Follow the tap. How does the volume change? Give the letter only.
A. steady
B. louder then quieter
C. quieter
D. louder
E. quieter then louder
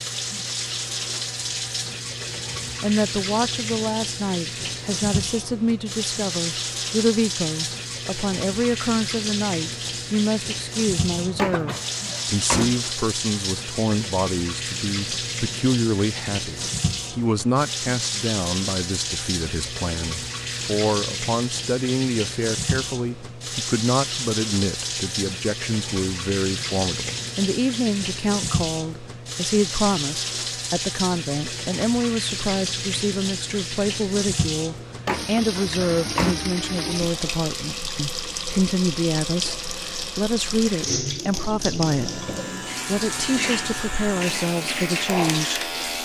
A.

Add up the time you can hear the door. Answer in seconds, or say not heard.
3 s.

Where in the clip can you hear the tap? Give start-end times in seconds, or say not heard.
0.0-46.0.